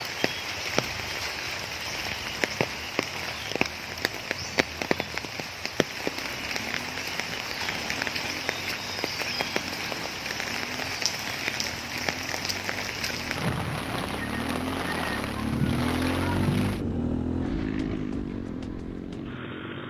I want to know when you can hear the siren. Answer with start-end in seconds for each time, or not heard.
not heard.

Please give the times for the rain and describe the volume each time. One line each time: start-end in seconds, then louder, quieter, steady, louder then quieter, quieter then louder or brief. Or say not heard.
0.0-16.8 steady.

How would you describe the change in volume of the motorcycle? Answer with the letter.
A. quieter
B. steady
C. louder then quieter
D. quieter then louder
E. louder
E.